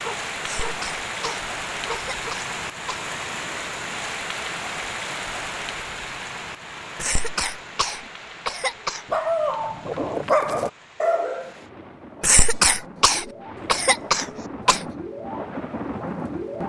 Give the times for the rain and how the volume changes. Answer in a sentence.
The rain can be heard from 0.0 to 16.6 s, getting quieter then louder.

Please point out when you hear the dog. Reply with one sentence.
The dog can be heard from 0.0 to 2.4 s and from 9.1 to 11.5 s.